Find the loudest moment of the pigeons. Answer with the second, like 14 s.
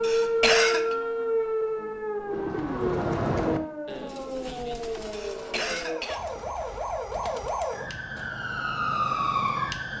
3 s.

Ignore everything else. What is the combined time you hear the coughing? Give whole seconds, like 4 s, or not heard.
2 s.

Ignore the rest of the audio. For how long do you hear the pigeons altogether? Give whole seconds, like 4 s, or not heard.
6 s.